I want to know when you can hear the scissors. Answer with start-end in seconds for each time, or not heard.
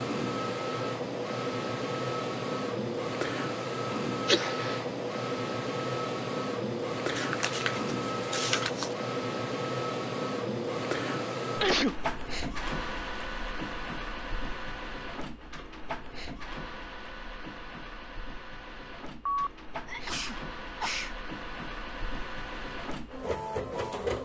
7.0-8.9.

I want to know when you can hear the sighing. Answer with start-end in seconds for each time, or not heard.
not heard.